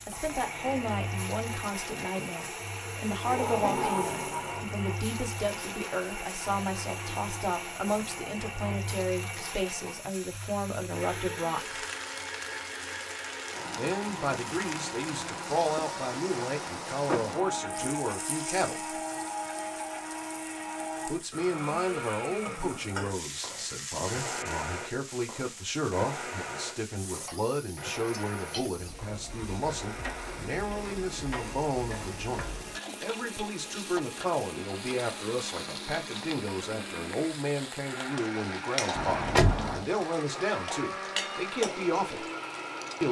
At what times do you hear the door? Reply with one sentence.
The door can be heard from 3.2 to 4.7 s, from 17.1 to 17.9 s and from 38.9 to 39.9 s.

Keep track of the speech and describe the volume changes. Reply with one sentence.
The loudness of the speech stays about the same.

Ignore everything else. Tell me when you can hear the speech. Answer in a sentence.
You can hear the speech from 0.1 to 11.8 s, from 13.8 to 19.0 s and from 21.1 to 42.2 s.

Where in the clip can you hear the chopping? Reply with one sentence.
You can't hear the chopping here.